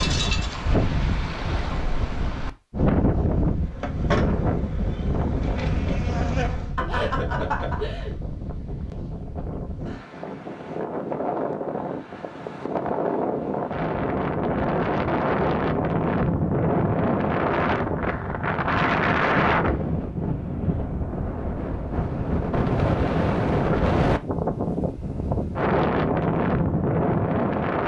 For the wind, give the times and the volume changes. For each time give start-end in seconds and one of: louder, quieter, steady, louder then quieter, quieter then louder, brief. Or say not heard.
0.0-27.8 quieter then louder.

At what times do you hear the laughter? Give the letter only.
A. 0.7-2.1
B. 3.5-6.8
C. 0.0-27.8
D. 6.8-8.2
D.